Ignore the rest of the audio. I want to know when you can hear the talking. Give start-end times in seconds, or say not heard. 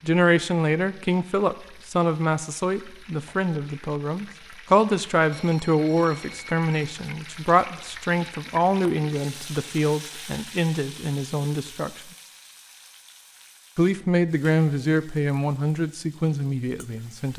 0.0-12.0, 13.8-17.3.